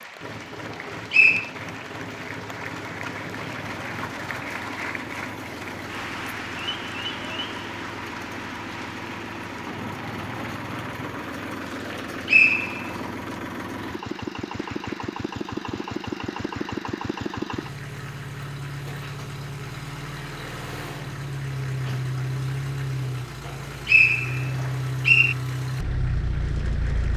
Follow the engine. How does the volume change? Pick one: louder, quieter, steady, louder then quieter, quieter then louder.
louder.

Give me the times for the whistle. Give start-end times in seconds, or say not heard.
0.7-1.5, 11.8-13.1, 23.4-25.4.